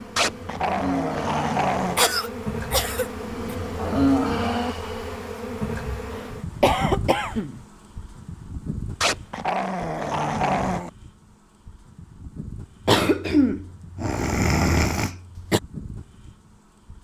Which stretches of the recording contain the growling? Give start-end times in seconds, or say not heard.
0.1-2.0, 9.0-10.9.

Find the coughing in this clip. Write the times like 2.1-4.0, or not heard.
1.9-3.5, 6.1-7.6, 12.8-15.6.